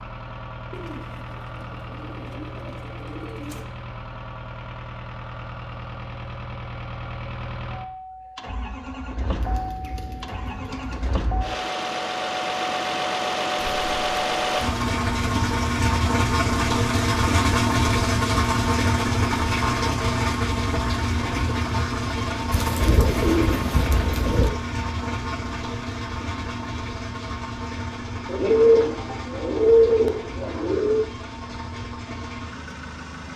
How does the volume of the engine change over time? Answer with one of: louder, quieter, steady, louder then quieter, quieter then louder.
louder then quieter.